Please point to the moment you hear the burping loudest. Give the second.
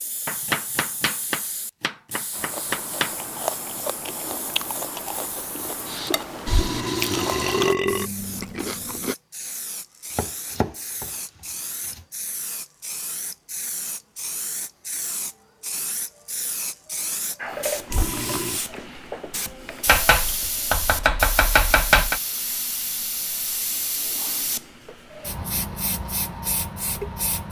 8 s.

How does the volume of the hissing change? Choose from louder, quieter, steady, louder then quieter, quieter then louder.
louder.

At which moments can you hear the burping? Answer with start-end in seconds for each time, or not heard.
6.5-8.1, 17.9-18.6.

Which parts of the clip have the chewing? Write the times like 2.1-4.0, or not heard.
2.3-9.2.